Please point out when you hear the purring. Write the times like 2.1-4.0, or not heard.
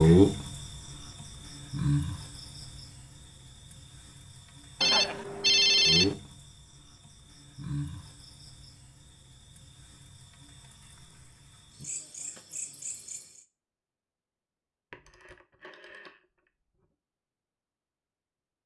not heard.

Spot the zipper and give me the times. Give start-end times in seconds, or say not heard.
not heard.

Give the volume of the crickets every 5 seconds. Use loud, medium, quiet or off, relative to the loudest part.
loud, medium, quiet, off.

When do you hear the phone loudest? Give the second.
6 s.